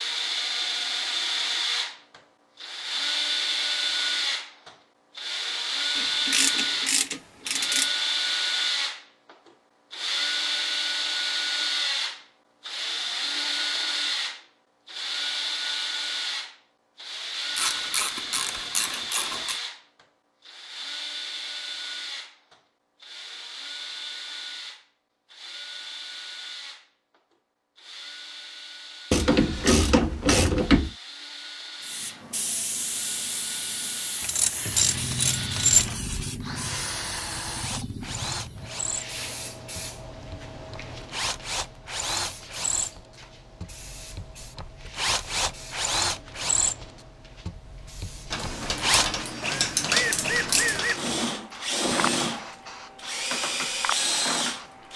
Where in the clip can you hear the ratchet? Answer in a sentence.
You can hear the ratchet from 6.0 to 7.9 s, from 17.6 to 19.6 s, from 29.1 to 30.9 s, from 34.2 to 36.1 s and from 48.3 to 51.0 s.